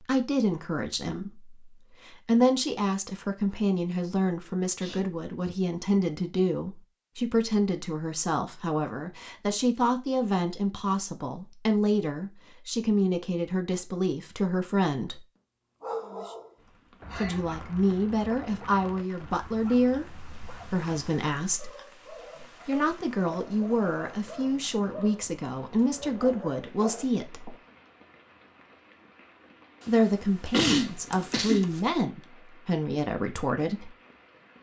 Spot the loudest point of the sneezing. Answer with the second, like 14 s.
31 s.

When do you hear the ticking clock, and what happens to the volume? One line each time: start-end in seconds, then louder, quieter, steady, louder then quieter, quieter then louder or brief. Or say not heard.
not heard.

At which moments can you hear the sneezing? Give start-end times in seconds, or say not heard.
4.8-5.5, 16.6-17.4, 30.5-31.9.